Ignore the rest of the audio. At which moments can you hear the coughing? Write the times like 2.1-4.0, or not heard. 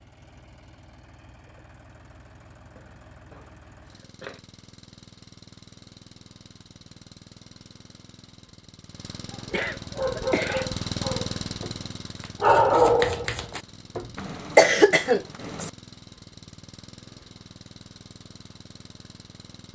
2.8-4.4, 9.5-10.7, 14.2-15.7.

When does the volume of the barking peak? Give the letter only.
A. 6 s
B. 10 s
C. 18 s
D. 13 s
D.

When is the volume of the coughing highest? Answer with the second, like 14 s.
15 s.